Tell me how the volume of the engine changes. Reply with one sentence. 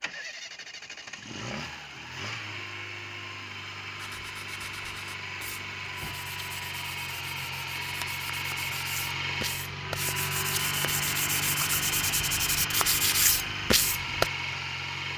The volume of the engine goes up.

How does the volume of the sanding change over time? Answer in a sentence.
The volume of the sanding goes up.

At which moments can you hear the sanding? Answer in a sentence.
The sanding can be heard from 4.0 to 14.3 s.